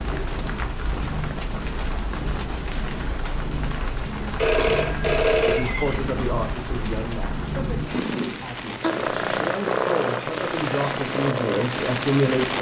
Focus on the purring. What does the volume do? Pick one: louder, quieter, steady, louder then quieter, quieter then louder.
louder.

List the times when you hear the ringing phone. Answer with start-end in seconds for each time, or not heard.
4.4-5.8.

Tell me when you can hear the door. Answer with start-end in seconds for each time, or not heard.
5.5-6.0.